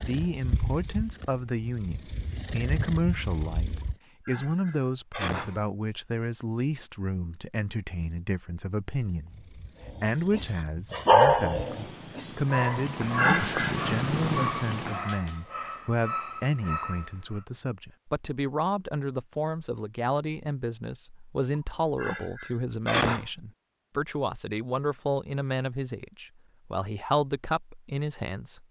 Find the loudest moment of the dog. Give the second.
11 s.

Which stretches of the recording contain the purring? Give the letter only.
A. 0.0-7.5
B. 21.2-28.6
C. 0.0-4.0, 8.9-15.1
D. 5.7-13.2
C.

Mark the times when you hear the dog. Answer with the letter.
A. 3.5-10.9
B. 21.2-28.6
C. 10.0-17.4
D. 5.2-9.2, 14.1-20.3
C.